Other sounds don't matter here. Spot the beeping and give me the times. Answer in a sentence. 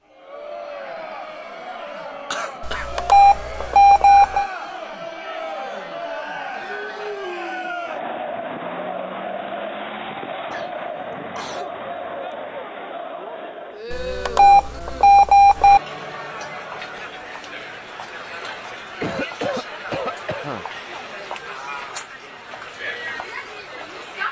The beeping can be heard from 2.6 to 4.5 s and from 13.9 to 15.8 s.